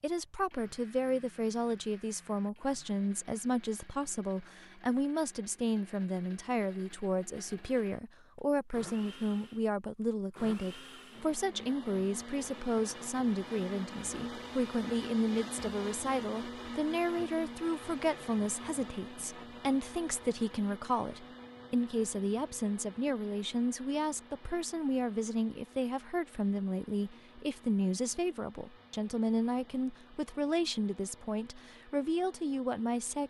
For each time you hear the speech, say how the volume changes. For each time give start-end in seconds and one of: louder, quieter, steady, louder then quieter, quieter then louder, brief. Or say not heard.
0.0-33.2 steady.